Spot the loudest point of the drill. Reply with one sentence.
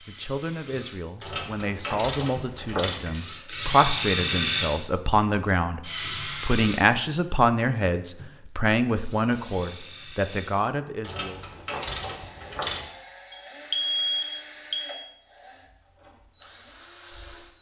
The loudest moment of the drill is at 4 seconds.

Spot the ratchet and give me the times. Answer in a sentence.
You can hear the ratchet from 1.2 to 3.0 s and from 11.0 to 12.8 s.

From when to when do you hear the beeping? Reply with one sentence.
The beeping can be heard from 13.3 to 14.9 s.